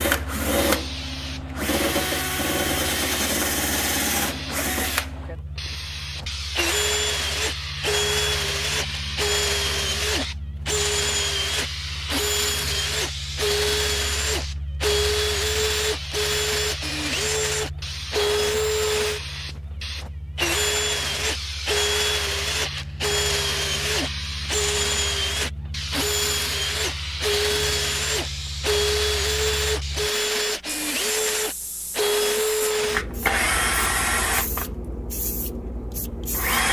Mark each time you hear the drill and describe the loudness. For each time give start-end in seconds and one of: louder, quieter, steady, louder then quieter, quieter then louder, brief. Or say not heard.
0.0-36.6 steady.